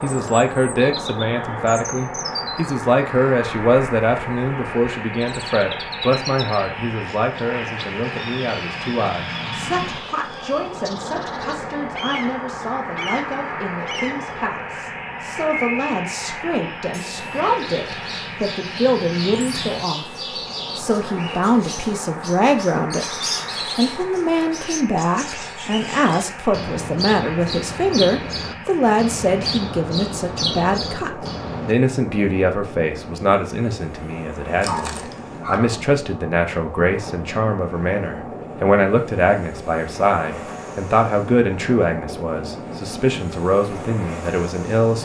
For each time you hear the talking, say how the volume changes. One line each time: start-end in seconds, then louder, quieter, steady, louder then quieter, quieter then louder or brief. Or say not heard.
0.0-23.1 quieter then louder
23.8-45.0 steady.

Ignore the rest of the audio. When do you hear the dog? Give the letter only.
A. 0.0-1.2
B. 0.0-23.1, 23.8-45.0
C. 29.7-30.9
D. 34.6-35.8
D.